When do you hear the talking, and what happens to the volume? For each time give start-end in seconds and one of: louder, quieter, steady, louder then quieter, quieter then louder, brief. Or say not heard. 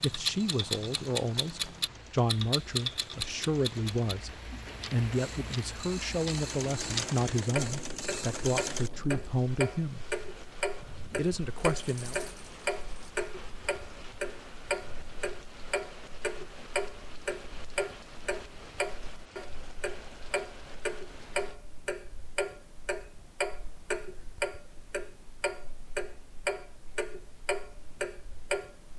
0.0-10.1 steady
11.2-12.2 brief.